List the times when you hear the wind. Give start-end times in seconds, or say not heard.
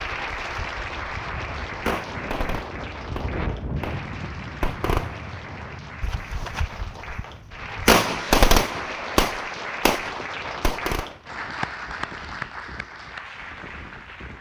0.0-14.3.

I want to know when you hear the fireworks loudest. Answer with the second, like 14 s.
8 s.